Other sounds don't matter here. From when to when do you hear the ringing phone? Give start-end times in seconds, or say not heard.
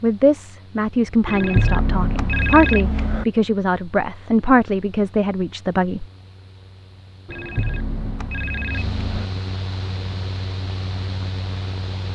1.2-3.2, 7.2-9.3.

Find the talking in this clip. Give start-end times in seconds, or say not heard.
0.0-6.0.